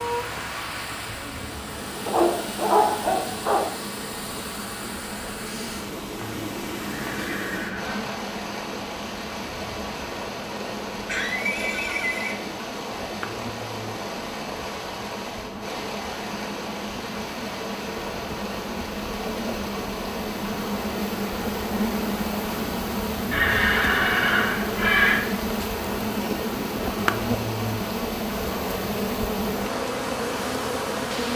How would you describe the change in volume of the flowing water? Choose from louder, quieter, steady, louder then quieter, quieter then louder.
steady.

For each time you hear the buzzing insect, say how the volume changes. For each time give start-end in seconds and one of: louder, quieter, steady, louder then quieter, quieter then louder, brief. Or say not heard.
0.0-31.3 louder.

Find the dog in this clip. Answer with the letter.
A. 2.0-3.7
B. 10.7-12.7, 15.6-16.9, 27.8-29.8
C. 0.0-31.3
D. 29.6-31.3
A.